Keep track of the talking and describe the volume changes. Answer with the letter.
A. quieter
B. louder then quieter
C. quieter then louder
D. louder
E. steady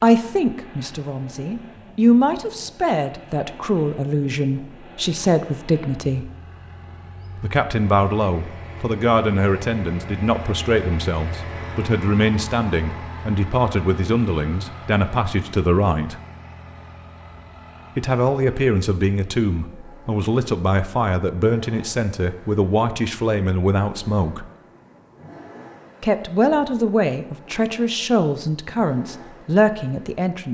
E.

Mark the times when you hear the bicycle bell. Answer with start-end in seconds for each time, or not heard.
not heard.